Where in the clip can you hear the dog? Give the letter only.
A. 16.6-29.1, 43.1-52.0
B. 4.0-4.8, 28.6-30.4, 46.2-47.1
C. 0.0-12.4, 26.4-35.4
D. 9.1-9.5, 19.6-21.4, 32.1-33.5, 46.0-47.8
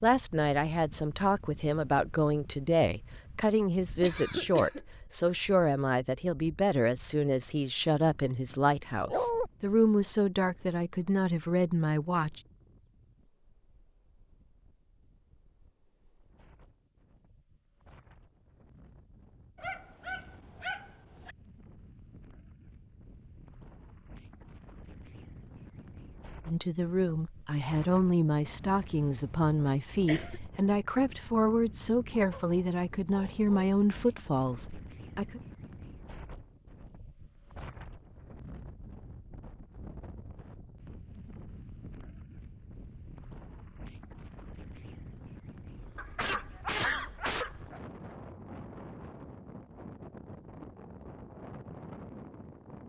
D.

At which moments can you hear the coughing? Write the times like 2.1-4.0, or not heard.
4.0-4.8, 28.6-30.4, 46.2-47.1.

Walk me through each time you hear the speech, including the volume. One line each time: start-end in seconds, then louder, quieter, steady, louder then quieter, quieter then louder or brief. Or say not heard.
0.0-12.4 steady
26.4-35.4 steady.